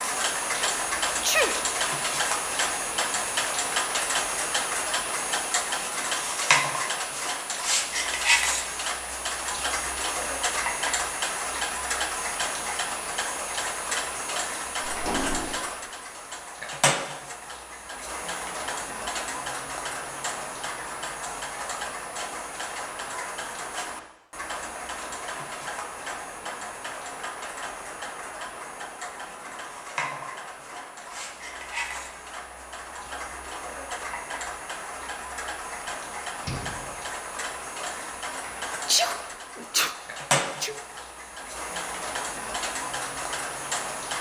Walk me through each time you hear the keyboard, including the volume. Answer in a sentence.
You can't hear the keyboard here.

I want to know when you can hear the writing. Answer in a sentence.
You can't hear the writing here.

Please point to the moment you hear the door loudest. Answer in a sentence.
The loudest moment of the door is at 15 seconds.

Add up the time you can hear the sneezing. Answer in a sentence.
You can hear the sneezing for 2 seconds altogether.